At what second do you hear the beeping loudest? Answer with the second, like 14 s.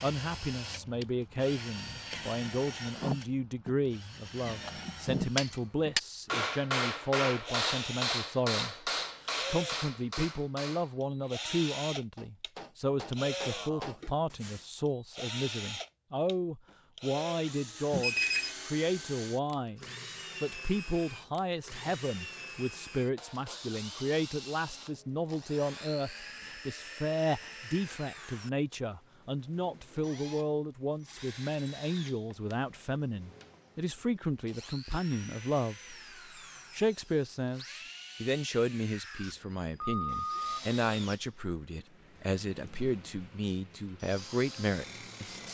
18 s.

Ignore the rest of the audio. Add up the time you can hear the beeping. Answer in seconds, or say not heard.
2 s.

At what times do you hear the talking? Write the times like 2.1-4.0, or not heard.
0.0-36.0, 36.7-45.4.